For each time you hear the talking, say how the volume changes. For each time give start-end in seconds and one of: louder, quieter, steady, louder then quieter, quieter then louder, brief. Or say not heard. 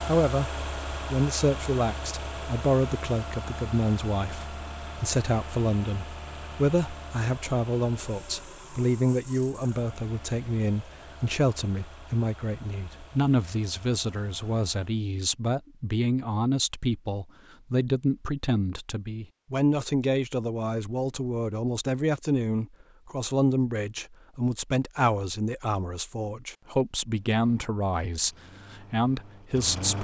0.1-30.0 steady.